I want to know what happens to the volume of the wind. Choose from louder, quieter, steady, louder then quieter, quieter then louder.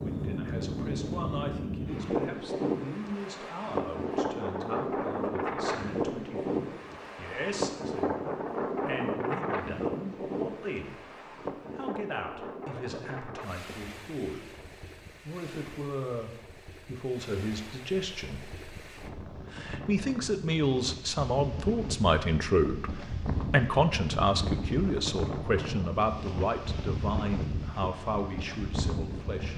quieter then louder.